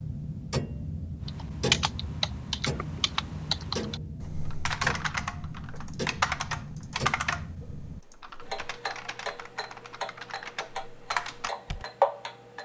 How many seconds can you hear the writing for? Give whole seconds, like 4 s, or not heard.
not heard.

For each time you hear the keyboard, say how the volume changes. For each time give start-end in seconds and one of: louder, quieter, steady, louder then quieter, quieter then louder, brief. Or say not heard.
1.2-11.8 quieter then louder.